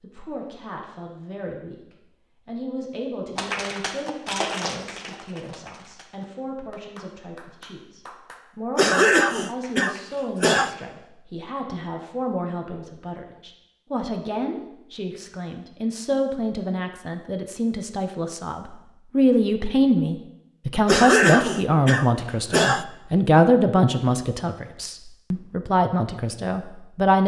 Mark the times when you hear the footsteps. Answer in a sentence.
The footsteps can't be heard in this clip.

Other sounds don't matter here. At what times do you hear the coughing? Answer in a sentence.
You can hear the coughing from 8.8 to 10.7 s and from 20.9 to 22.9 s.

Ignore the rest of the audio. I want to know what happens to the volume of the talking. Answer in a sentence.
The volume of the talking goes up.